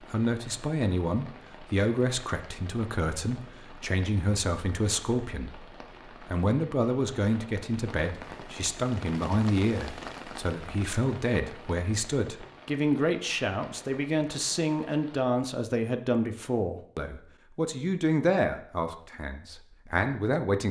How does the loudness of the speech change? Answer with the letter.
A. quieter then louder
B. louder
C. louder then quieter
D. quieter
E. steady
E.